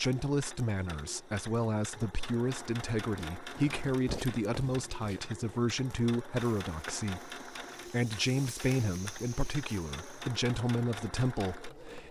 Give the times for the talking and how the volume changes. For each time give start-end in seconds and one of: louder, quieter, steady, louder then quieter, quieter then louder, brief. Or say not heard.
0.0-12.0 steady.